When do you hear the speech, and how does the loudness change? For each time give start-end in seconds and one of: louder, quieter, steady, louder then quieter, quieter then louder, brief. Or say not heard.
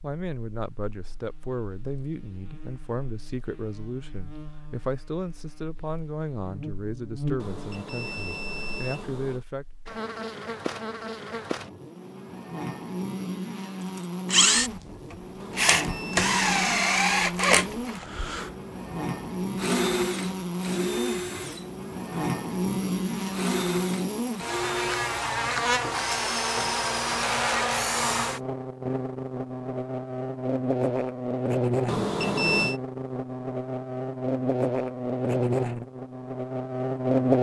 0.0-9.7 steady.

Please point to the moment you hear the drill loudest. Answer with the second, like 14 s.
17 s.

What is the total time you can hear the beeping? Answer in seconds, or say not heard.
5 s.